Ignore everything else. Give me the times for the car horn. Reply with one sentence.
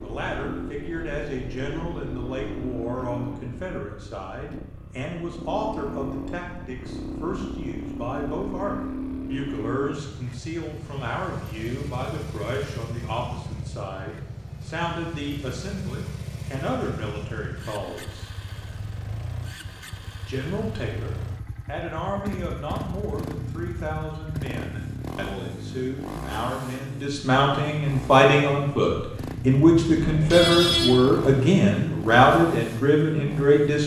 You can hear the car horn from 29.9 to 31.5 s.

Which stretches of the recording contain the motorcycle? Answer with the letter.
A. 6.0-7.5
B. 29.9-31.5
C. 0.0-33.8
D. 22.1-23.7
C.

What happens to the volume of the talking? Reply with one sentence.
The volume of the talking goes up.